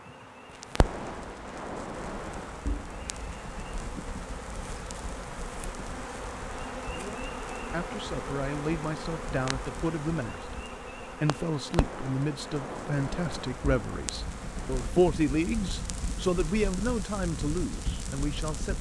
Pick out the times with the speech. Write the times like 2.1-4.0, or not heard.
6.9-18.7.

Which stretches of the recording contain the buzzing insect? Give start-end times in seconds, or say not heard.
0.0-18.7.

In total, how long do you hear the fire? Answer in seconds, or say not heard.
18 s.